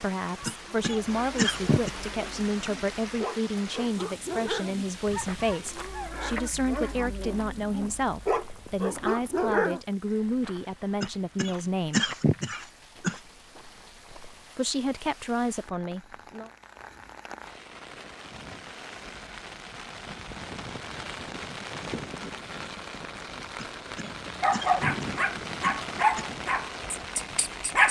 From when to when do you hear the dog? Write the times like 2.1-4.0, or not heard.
0.3-9.8, 24.0-27.8.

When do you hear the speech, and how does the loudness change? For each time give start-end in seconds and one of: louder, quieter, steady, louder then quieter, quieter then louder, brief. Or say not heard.
0.0-12.1 steady
14.6-16.5 brief.